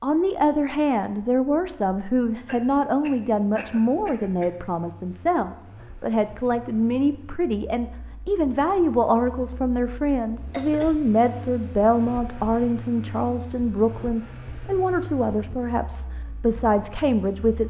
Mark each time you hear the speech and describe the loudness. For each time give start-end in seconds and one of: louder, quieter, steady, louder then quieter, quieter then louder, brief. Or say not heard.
0.0-17.6 steady.